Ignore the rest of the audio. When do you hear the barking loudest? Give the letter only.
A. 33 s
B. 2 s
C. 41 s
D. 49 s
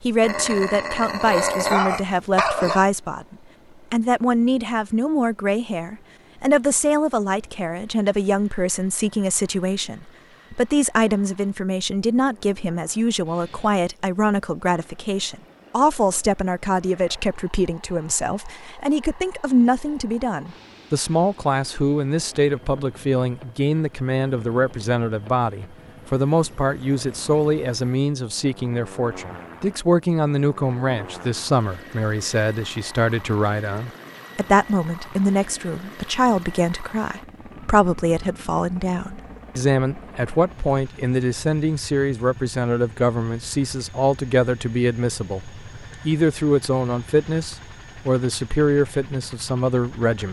B.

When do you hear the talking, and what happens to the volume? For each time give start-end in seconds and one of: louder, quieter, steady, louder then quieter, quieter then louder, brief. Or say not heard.
0.0-50.2 steady.